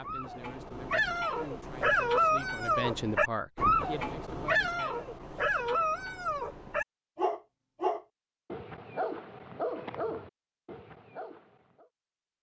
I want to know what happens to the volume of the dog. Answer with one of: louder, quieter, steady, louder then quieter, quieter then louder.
quieter.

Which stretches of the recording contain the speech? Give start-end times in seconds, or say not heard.
0.0-5.1.